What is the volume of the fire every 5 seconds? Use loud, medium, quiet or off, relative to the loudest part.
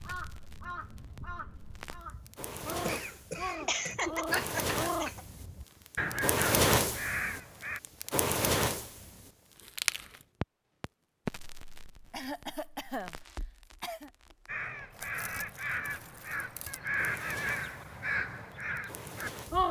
medium, loud, quiet, quiet.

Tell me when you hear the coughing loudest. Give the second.
4 s.